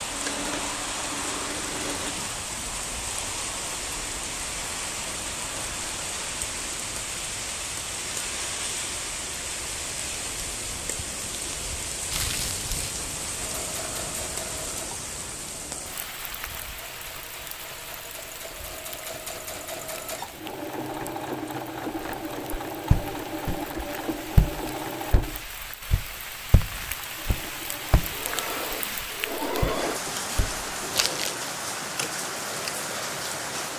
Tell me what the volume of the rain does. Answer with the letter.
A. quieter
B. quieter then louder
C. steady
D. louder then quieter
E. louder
B.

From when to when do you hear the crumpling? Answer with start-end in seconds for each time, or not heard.
12.1-12.9, 30.9-31.5.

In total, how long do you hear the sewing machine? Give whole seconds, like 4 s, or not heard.
21 s.